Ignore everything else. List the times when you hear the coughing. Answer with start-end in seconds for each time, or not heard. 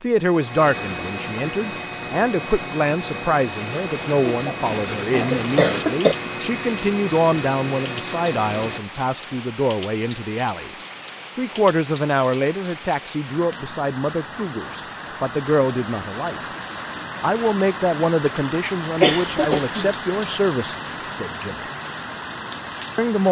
4.2-6.2, 19.0-19.9.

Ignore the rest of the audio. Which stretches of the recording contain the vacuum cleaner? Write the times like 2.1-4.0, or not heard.
0.0-8.8.